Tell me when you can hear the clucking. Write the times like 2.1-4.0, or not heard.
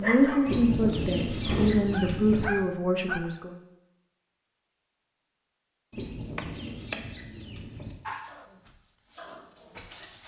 0.5-2.5, 5.9-8.0.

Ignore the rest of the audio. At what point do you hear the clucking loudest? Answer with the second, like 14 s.
1 s.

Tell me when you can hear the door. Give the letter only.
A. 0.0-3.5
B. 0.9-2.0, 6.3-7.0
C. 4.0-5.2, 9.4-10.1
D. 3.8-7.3
B.